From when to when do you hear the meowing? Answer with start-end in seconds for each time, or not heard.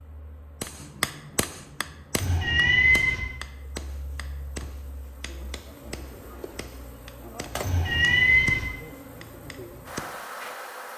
2.1-3.2, 7.6-8.7.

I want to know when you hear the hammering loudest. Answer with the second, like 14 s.
1 s.